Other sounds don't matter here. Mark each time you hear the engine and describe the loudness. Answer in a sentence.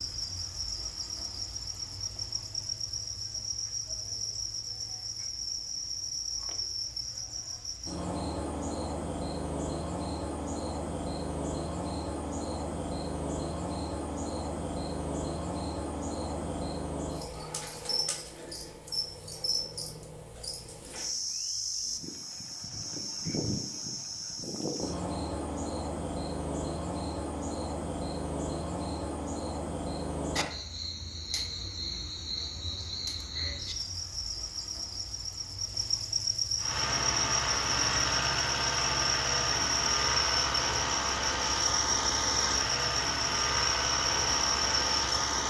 The engine can be heard from 36.5 to 45.4 s, at a steady volume.